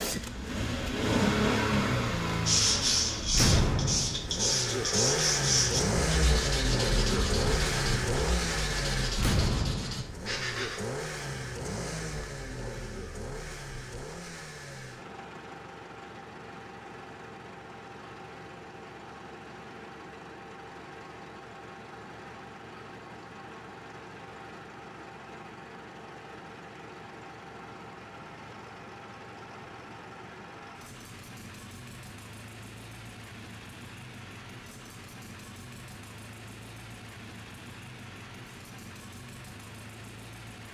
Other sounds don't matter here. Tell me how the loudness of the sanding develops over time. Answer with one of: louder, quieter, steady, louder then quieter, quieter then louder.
quieter.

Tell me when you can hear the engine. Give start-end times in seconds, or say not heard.
0.0-40.7.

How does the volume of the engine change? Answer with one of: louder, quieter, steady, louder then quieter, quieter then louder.
quieter.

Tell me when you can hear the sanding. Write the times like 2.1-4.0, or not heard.
2.5-10.8.